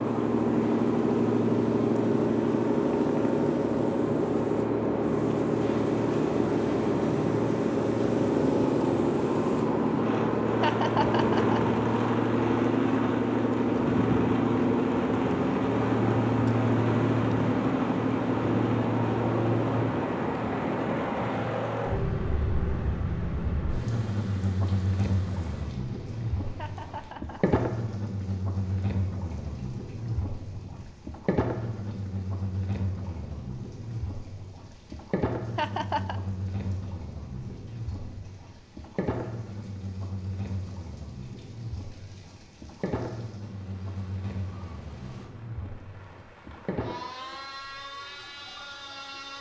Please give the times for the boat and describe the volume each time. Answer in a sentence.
The boat can be heard from 0.0 to 49.3 s, getting quieter.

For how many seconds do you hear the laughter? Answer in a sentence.
You can hear the laughter for 3 seconds altogether.